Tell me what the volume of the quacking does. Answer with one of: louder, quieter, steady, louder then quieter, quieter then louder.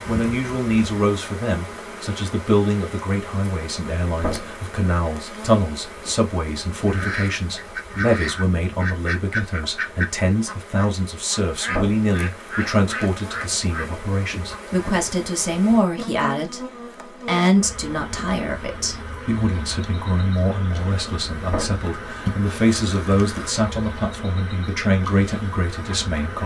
steady.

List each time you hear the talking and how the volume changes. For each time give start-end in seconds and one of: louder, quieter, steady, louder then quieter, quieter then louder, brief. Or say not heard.
0.1-26.4 steady.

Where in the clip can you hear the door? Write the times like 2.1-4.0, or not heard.
4.2-4.6, 11.7-12.1, 21.4-21.9.